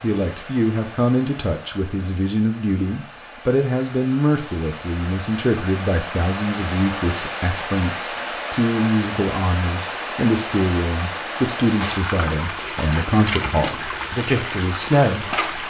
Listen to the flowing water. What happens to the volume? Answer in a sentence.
The loudness of the flowing water goes up.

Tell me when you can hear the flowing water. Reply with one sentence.
The flowing water can be heard from 0.0 to 15.6 s.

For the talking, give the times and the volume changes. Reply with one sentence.
The talking can be heard from 0.0 to 15.4 s, at a steady volume.